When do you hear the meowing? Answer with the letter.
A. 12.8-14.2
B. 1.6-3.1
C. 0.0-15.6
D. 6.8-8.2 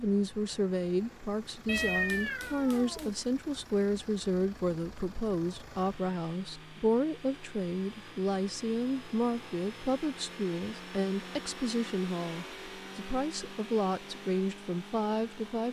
B.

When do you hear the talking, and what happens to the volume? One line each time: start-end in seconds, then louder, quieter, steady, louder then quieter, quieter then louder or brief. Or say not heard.
0.0-15.6 steady.